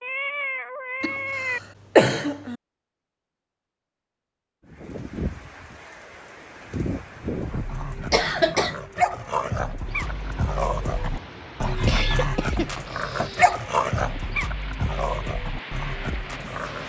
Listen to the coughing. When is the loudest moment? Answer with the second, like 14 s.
2 s.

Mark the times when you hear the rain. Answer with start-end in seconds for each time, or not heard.
4.7-16.8.